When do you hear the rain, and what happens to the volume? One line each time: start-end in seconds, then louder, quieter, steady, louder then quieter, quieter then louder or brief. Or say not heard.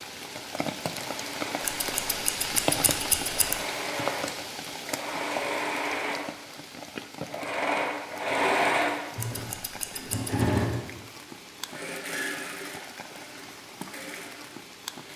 0.0-15.1 quieter.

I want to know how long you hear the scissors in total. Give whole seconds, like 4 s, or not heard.
3 s.